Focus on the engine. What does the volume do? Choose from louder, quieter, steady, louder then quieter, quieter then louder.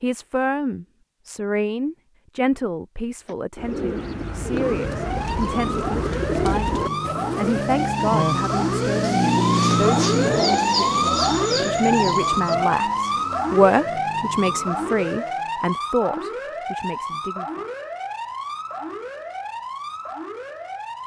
louder then quieter.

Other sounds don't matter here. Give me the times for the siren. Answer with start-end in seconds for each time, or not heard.
4.5-21.0.